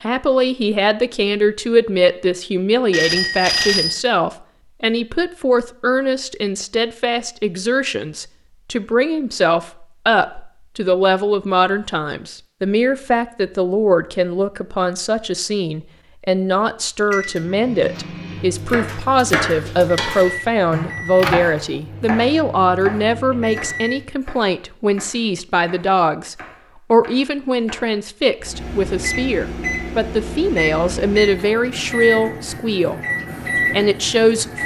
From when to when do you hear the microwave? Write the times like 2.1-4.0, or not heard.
17.1-24.1, 28.4-34.6.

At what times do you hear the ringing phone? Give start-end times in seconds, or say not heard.
2.9-4.0.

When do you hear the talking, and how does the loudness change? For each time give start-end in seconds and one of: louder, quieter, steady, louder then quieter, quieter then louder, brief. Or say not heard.
0.0-33.0 steady
33.7-34.5 brief.